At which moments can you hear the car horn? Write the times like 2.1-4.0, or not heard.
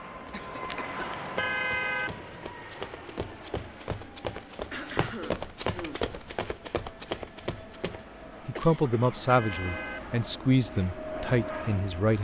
0.7-2.1, 8.6-10.0.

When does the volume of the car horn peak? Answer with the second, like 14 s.
2 s.